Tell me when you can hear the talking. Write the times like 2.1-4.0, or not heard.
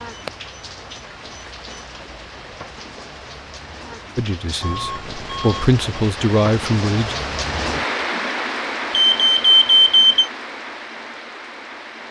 4.2-7.2.